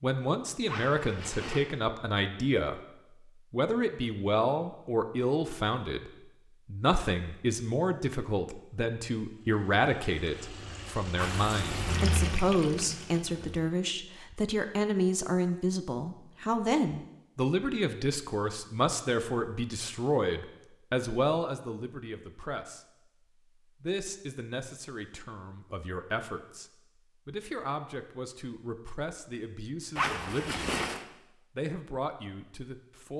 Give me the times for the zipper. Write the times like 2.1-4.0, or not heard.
0.7-1.6, 11.2-12.4, 29.9-31.1.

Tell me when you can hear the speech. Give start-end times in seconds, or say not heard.
0.0-2.8, 3.5-22.9, 23.8-30.8, 31.6-33.1.